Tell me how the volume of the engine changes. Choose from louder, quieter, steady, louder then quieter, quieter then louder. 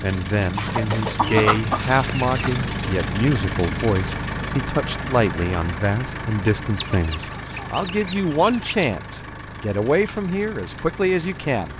quieter.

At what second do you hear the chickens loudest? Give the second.
1 s.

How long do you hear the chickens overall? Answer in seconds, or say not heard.
4 s.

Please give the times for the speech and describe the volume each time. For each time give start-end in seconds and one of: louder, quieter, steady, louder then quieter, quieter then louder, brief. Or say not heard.
0.0-11.7 steady.